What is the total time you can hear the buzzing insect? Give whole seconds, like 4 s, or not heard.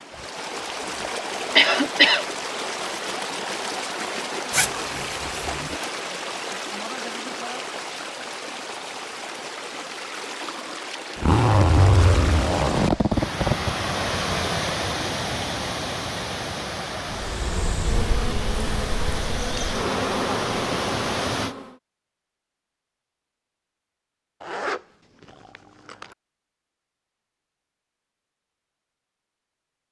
5 s.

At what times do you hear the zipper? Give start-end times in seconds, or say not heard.
4.5-5.8, 11.2-13.8, 24.4-26.1.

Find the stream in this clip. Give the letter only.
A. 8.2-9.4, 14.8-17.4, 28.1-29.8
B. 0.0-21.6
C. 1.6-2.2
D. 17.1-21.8
B.